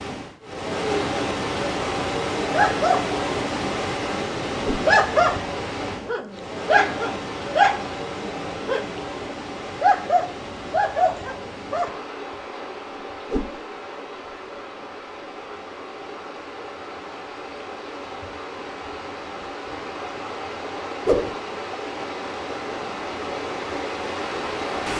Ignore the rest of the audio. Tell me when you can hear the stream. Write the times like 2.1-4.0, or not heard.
0.0-24.9.